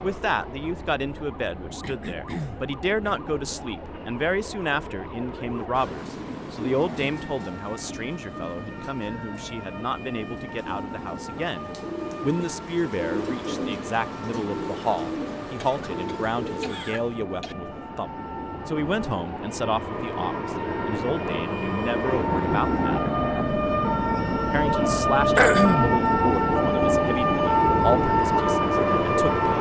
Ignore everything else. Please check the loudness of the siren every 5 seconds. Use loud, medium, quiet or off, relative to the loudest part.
quiet, quiet, quiet, quiet, medium, loud.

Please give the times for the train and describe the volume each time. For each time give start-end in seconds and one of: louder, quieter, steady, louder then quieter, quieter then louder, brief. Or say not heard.
0.0-29.5 louder.